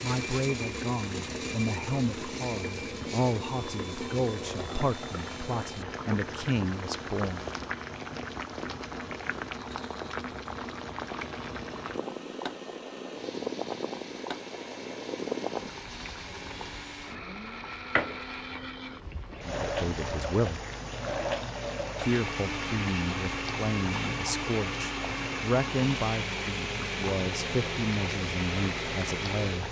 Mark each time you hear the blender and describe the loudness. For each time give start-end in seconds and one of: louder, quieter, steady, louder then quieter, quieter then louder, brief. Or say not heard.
0.0-29.6 quieter then louder.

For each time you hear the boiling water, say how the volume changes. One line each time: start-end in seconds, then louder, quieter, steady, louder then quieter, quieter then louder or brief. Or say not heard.
0.0-29.6 steady.